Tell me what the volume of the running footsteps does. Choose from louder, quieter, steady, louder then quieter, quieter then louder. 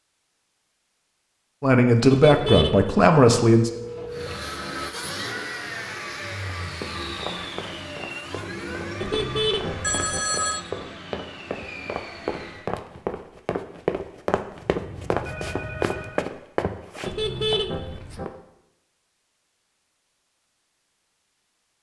louder.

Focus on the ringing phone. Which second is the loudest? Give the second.
10 s.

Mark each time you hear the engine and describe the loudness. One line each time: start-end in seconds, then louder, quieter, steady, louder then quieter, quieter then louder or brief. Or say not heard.
4.0-12.7 quieter.